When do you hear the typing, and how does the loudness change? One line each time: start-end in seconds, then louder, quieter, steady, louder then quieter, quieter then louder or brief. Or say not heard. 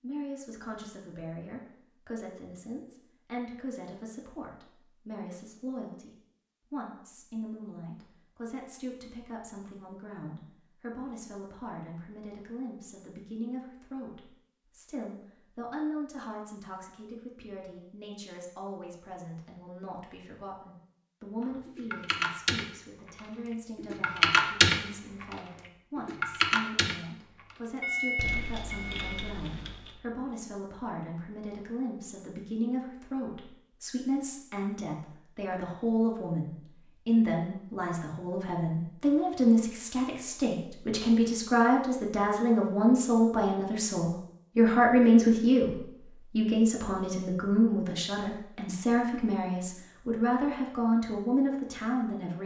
21.4-29.9 louder then quieter.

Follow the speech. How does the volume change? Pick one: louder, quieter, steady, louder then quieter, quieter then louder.
louder.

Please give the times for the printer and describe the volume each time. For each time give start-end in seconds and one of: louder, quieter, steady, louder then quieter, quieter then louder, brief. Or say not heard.
not heard.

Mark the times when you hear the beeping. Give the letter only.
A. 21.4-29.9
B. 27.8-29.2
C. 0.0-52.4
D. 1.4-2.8
B.